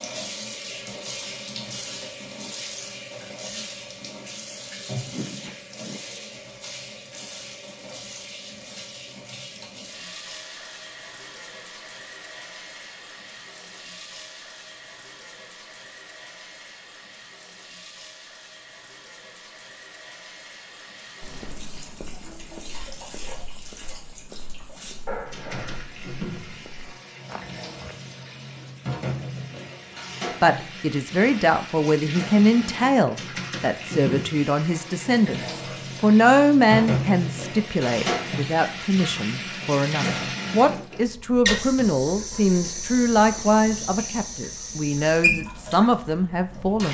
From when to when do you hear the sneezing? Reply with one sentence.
The sneezing can be heard from 5.0 to 6.0 s and from 25.1 to 25.8 s.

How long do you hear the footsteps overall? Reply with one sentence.
The footsteps can be heard for 7 seconds in total.